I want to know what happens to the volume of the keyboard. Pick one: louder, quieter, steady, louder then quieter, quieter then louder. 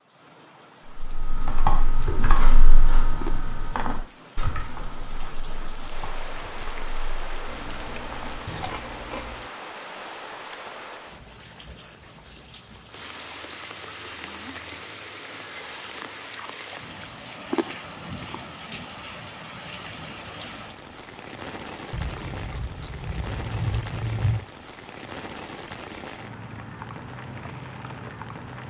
quieter.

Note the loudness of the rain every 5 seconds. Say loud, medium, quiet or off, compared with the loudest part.
medium, loud, loud, loud, loud, loud.